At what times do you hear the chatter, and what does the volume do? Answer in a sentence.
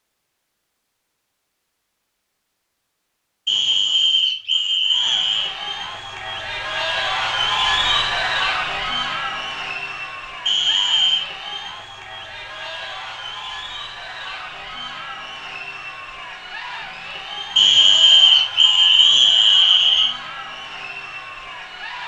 The chatter can be heard from 4.8 to 22.0 s, getting quieter.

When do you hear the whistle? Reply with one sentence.
The whistle can be heard from 3.5 to 5.5 s, from 10.4 to 11.3 s and from 17.6 to 20.1 s.